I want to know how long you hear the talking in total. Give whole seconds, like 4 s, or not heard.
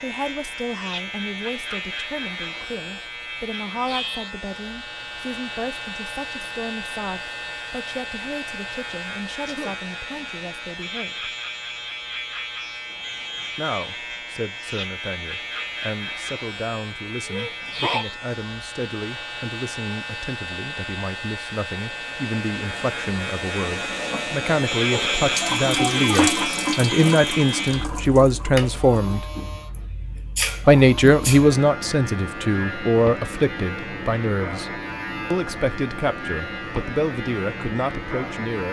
35 s.